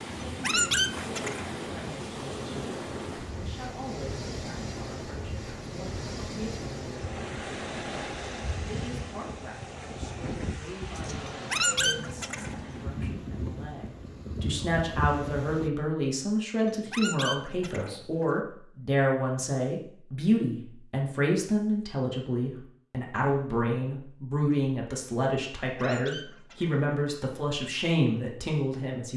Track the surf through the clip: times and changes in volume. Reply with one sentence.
You can hear the surf from 0.0 to 15.7 s, at a steady volume.